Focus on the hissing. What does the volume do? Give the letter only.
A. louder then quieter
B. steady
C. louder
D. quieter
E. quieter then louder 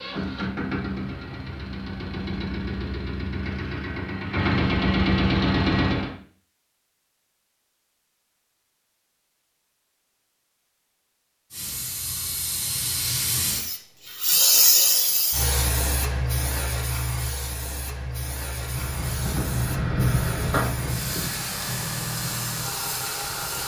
A.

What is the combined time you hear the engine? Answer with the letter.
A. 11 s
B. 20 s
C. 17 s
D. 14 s
A.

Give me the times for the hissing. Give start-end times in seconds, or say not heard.
11.5-23.6.